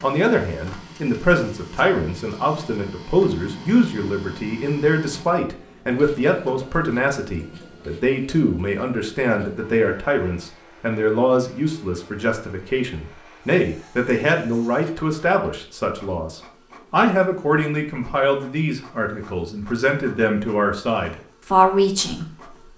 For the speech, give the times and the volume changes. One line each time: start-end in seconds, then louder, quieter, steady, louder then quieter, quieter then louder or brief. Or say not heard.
0.0-22.2 steady.